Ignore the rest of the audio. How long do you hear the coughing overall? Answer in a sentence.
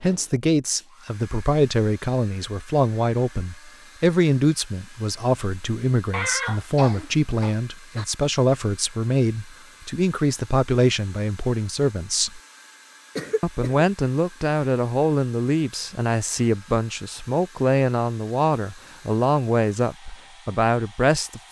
You can hear the coughing for 3 seconds altogether.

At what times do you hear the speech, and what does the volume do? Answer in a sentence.
You can hear the speech from 0.0 to 12.4 s, at a steady volume; and from 13.4 to 21.4 s, at a steady volume.